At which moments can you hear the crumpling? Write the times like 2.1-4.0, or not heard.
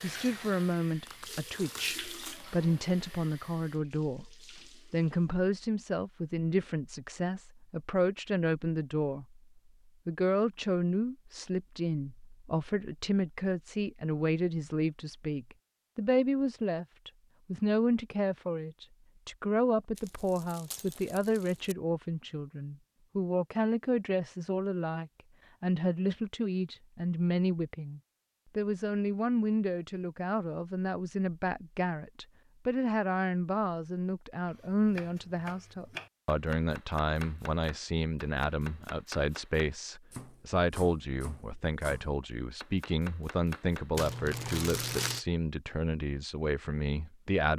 1.1-2.5, 19.9-21.8, 44.0-45.2.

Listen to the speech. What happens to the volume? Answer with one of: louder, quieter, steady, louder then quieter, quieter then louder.
steady.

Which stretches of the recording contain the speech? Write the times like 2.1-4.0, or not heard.
0.0-9.4, 10.1-47.5.